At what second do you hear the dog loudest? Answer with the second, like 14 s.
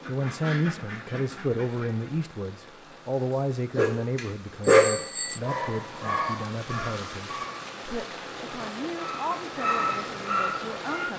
5 s.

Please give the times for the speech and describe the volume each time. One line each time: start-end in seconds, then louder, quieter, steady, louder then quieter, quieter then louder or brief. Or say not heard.
0.1-11.1 quieter.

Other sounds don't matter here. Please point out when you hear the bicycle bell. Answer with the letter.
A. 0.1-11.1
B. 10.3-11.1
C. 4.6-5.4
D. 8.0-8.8
C.